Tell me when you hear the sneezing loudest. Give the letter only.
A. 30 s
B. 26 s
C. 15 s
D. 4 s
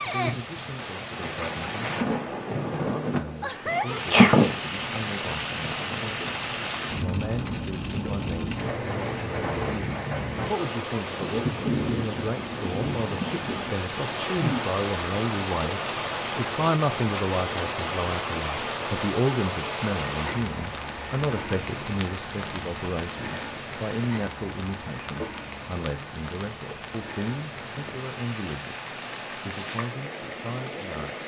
D.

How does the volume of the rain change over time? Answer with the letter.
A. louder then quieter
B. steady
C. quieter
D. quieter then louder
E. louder
C.